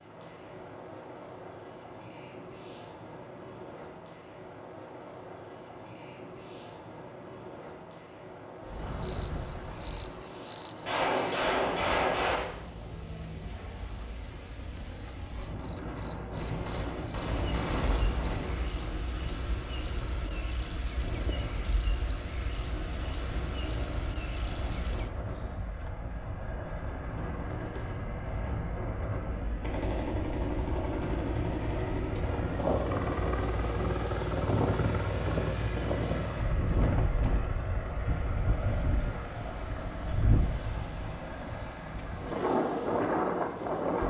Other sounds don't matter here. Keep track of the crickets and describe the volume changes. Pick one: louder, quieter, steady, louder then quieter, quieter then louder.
quieter then louder.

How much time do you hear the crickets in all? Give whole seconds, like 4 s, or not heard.
35 s.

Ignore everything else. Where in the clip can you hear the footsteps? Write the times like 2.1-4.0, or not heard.
not heard.